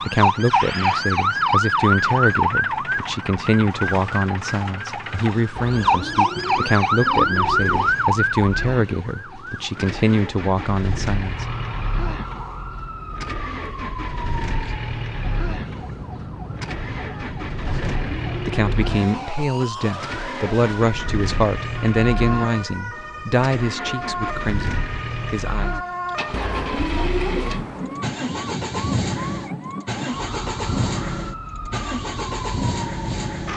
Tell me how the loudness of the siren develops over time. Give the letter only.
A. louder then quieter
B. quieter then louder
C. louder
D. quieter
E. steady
D.